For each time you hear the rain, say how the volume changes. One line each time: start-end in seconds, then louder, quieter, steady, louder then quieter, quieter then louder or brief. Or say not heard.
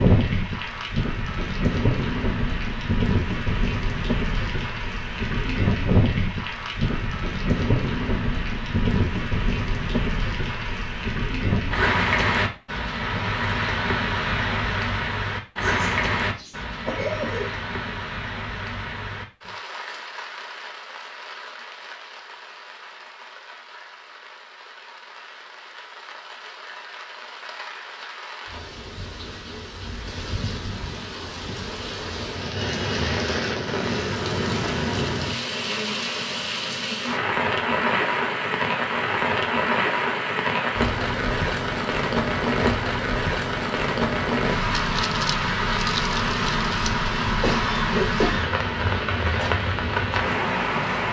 0.0-51.0 quieter then louder.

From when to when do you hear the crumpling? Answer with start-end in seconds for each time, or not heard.
44.8-47.0.